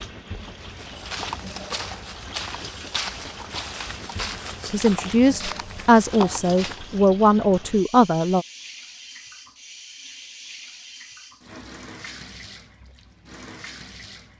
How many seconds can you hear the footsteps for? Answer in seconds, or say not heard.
6 s.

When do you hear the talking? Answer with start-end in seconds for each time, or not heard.
4.7-8.4.